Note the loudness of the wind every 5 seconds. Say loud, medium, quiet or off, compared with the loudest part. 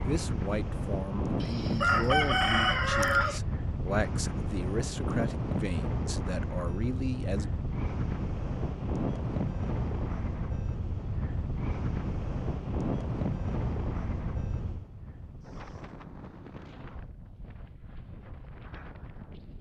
loud, loud, loud, quiet.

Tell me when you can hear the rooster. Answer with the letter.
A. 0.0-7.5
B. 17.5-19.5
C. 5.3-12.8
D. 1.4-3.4
D.